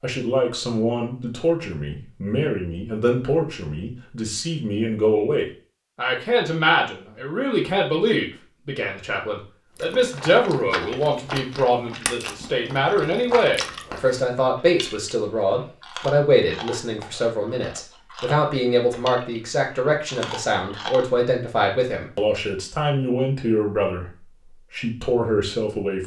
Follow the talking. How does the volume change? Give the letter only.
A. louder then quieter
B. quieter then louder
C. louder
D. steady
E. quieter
D.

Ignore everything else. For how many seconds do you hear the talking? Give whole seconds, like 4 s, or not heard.
26 s.